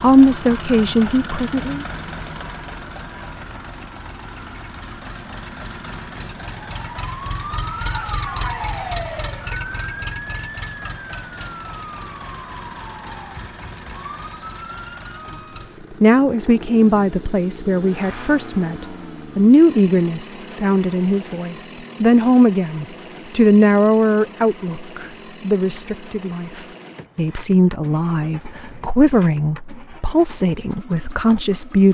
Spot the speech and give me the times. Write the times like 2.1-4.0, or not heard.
0.0-1.9, 15.6-31.8.